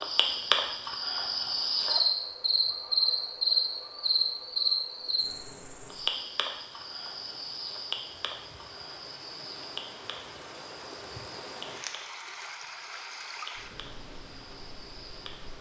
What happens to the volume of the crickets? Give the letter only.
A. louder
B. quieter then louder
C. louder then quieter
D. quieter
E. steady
D.